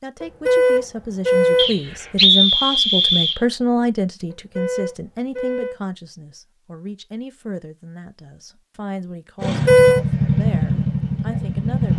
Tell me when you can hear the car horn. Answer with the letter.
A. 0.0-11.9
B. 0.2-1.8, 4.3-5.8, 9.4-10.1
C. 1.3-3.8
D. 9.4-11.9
B.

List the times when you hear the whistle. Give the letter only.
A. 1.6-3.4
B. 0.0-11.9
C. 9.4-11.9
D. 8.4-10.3
A.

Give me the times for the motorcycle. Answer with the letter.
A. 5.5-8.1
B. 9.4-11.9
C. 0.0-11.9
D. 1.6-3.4
B.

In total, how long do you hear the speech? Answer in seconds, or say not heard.
12 s.